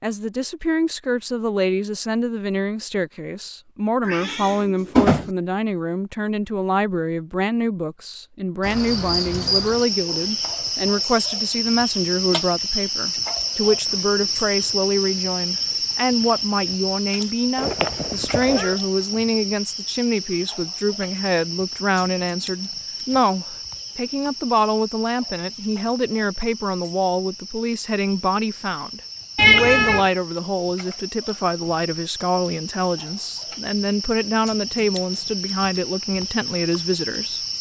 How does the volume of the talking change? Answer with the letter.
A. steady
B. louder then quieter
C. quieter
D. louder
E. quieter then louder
A.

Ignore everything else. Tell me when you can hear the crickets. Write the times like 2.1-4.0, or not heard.
8.6-37.5.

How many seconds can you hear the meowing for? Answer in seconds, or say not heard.
3 s.